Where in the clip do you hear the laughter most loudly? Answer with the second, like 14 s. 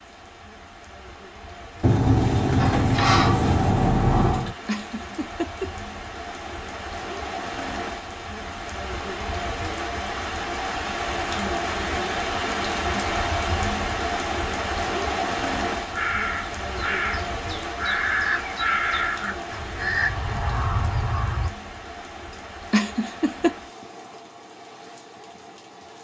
23 s.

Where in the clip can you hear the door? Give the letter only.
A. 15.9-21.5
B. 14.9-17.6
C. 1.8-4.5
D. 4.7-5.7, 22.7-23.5
C.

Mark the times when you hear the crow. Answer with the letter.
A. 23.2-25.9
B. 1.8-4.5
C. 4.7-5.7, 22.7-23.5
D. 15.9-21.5
D.